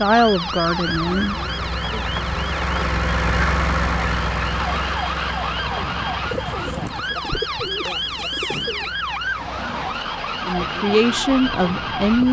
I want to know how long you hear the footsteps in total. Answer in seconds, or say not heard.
not heard.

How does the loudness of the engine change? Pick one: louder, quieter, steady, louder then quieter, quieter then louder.
louder then quieter.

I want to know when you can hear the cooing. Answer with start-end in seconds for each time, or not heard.
0.8-3.0, 6.2-8.9.